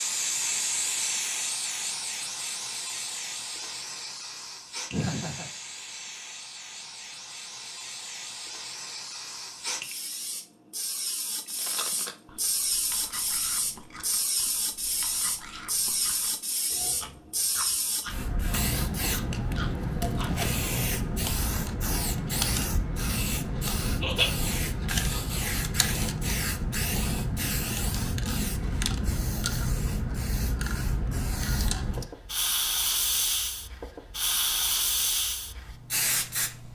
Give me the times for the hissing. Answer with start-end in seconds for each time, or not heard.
0.0-36.6.